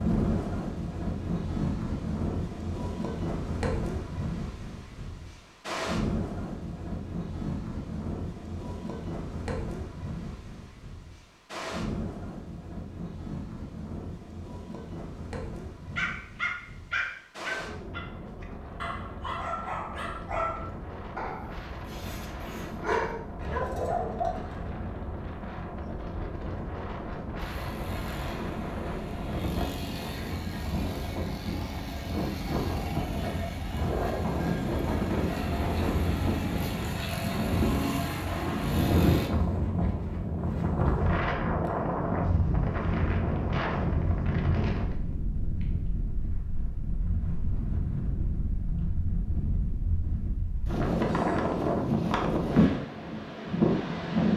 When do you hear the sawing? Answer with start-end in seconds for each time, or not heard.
not heard.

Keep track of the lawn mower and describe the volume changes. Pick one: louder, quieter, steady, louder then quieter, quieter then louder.
louder.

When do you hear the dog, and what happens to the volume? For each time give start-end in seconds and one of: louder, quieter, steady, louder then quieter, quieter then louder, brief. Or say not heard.
15.9-24.7 quieter then louder.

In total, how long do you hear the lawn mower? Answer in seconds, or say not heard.
12 s.